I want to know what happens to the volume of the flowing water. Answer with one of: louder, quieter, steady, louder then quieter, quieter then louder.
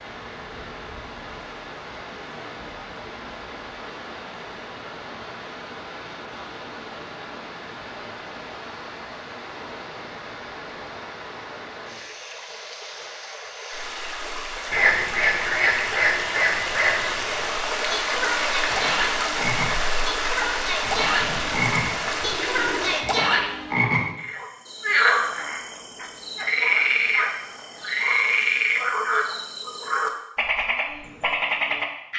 louder.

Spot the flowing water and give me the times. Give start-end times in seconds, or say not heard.
0.0-23.1.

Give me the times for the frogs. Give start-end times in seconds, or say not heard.
14.7-32.1.